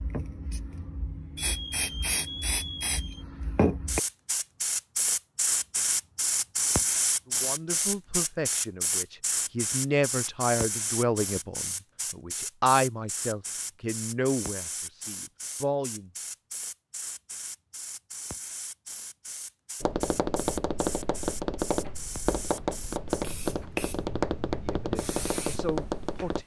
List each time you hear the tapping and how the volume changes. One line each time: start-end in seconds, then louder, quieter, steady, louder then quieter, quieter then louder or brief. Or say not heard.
19.8-26.4 steady.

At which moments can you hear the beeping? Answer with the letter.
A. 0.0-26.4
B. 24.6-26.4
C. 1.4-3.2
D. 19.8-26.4
C.